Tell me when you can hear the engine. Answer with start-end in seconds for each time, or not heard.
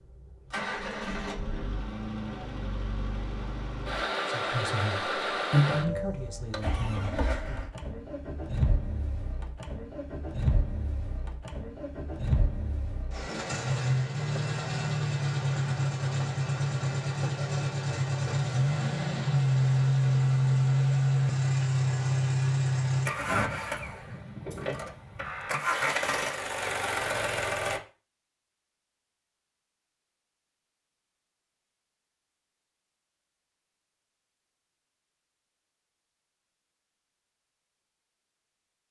0.0-27.8.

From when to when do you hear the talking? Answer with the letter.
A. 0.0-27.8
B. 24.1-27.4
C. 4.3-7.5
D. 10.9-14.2
C.